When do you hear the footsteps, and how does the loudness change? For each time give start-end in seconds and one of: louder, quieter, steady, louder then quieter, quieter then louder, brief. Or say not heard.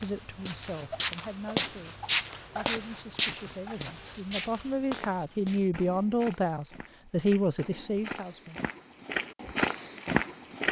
0.0-10.6 quieter then louder.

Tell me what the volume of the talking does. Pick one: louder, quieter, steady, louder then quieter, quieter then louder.
louder.